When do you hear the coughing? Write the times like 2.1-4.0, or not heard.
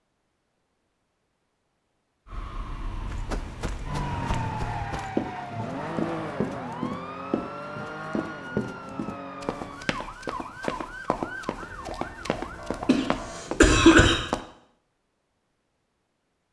12.8-14.2.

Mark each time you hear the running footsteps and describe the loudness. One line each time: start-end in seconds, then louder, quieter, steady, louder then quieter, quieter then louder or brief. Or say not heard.
3.0-14.4 steady.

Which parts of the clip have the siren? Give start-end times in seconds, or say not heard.
2.2-13.4.